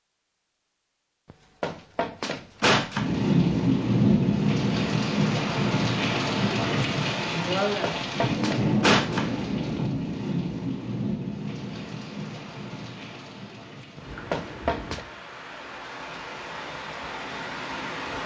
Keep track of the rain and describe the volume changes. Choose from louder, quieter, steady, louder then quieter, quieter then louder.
quieter.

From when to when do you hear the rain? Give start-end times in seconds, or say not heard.
3.0-18.2.